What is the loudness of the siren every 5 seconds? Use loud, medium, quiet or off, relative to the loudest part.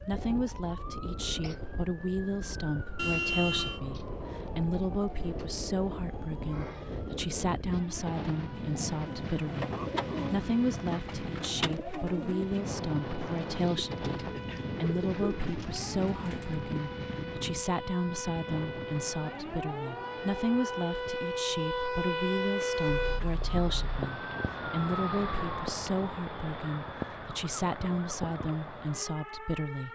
quiet, quiet, quiet, medium, loud, medium.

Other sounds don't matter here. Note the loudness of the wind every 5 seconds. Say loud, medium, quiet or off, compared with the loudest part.
medium, loud, loud, loud, off, off.